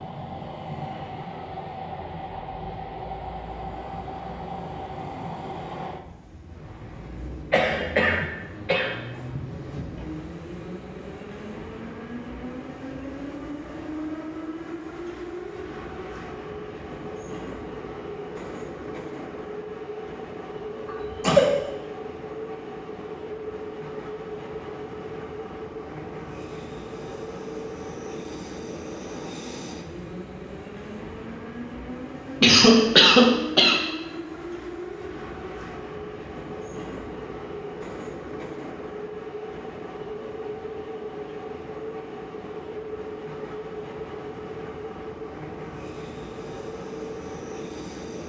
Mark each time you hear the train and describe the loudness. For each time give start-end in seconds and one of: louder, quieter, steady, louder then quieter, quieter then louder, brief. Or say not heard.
0.0-48.2 steady.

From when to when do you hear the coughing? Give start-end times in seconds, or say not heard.
7.5-9.4, 20.9-21.6, 32.4-33.8.